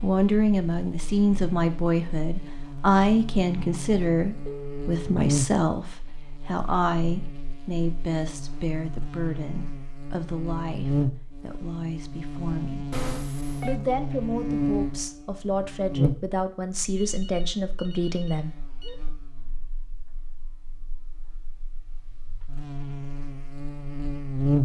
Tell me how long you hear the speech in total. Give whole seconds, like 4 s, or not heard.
18 s.